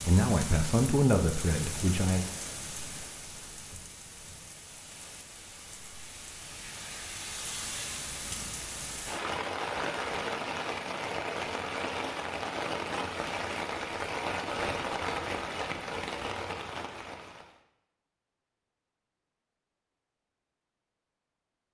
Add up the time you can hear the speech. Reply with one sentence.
The speech can be heard for 2 seconds in total.